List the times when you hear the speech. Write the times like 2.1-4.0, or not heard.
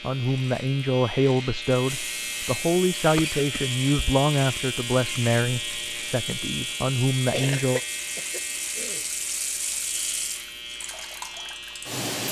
0.0-7.8.